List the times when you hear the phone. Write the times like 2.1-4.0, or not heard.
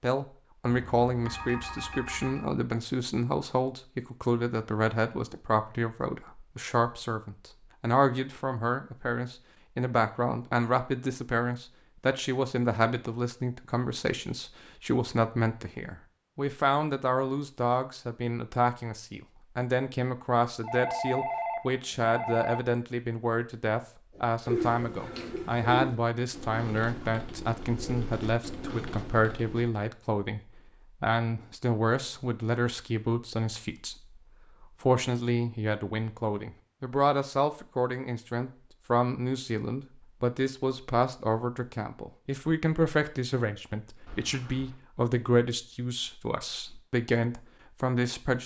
0.7-2.5, 20.6-22.6, 44.0-44.8.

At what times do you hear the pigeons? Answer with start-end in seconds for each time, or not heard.
24.1-29.7.